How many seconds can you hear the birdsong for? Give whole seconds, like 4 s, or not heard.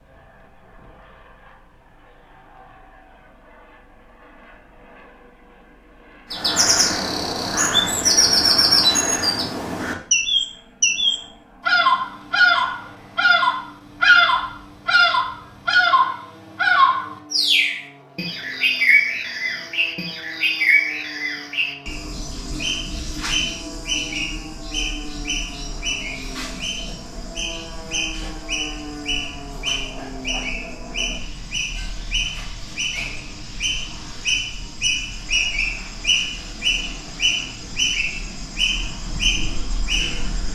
34 s.